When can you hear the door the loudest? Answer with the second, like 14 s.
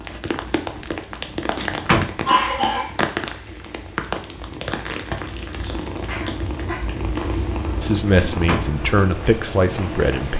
2 s.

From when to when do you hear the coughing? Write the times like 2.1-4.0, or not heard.
2.2-2.9, 6.0-6.8.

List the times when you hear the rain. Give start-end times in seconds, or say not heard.
0.0-10.3.